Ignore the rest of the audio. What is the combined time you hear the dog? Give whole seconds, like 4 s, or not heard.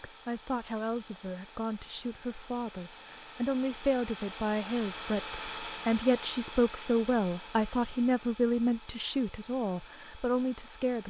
not heard.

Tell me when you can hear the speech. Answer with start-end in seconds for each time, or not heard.
0.0-11.0.